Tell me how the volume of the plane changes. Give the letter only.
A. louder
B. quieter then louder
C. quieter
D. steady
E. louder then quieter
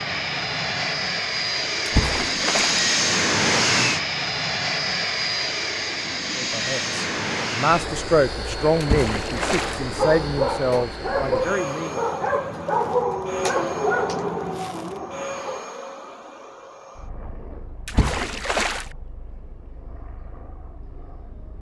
C.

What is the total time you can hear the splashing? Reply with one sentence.
You can hear the splashing for 3 seconds altogether.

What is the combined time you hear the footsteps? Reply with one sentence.
The footsteps can't be heard in this clip.